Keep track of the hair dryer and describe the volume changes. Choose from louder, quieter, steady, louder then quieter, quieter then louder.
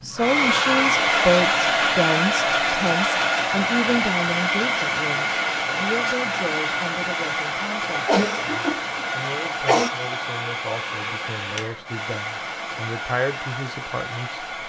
quieter.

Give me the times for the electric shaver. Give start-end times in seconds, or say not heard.
not heard.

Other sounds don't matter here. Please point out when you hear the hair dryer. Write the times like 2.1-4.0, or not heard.
0.0-14.6.